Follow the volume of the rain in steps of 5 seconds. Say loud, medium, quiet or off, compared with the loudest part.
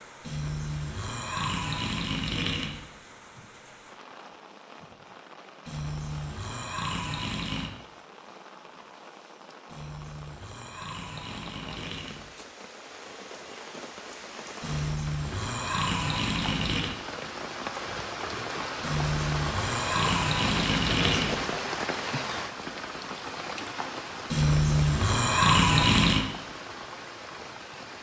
quiet, quiet, medium, loud, loud, medium.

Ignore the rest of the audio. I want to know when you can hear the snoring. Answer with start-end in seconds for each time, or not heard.
0.2-2.9, 5.7-7.7, 9.7-12.3, 14.6-16.9, 18.8-21.4, 24.3-26.2.